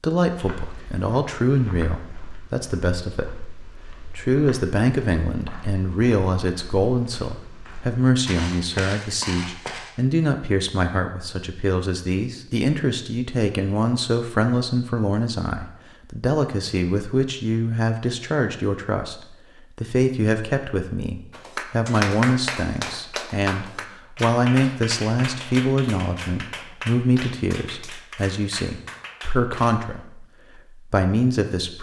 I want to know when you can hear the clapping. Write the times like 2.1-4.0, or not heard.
21.3-29.8.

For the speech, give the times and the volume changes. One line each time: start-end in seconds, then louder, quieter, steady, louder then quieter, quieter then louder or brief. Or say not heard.
0.0-31.7 steady.